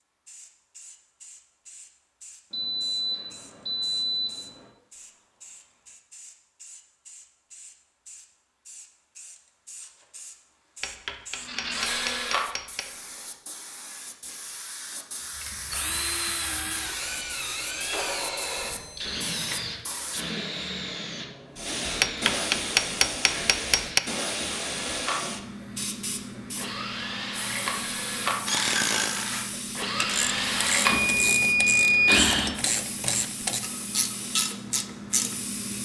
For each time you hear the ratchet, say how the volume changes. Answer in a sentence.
You can hear the ratchet from 28.4 to 35.4 s, at a steady volume.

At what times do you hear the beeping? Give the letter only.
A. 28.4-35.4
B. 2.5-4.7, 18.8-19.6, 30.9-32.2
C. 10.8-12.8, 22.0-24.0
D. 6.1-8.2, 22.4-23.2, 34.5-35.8
B.